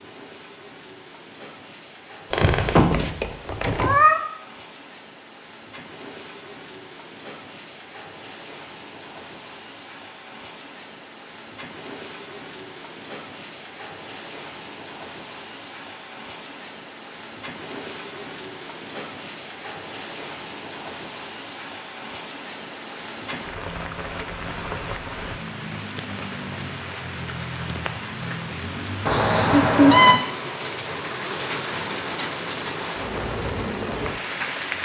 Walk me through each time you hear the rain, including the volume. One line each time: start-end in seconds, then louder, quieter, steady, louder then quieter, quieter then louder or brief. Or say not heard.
0.0-34.7 louder.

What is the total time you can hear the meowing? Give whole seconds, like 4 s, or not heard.
3 s.